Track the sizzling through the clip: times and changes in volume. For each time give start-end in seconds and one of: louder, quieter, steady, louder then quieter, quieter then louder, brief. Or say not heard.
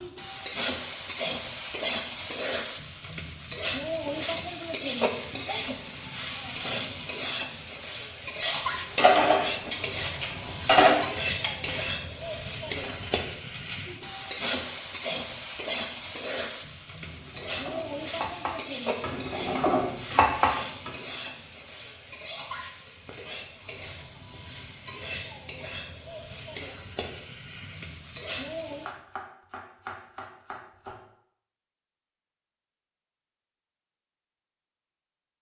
0.0-28.9 quieter.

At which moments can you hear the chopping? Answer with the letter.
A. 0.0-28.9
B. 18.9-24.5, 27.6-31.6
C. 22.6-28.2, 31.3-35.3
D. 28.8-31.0
D.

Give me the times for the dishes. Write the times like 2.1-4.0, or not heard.
8.4-14.0, 17.1-21.1.